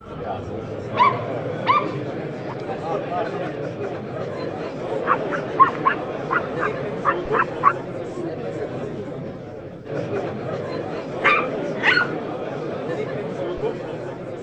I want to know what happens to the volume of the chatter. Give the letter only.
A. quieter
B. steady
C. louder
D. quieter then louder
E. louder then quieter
B.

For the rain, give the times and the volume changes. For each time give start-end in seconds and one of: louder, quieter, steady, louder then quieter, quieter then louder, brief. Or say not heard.
not heard.